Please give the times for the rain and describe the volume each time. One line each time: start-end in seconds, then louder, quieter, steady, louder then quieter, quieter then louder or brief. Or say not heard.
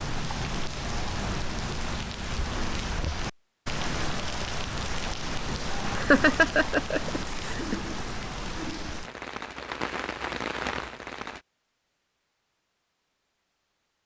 0.0-11.4 steady.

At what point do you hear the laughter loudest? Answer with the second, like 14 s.
6 s.